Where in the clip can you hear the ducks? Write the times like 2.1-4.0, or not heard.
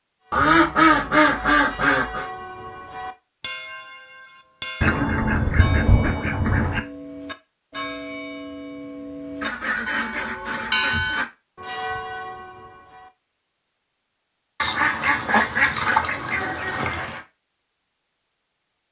0.3-2.3, 4.8-6.8, 9.4-11.3, 14.6-17.2.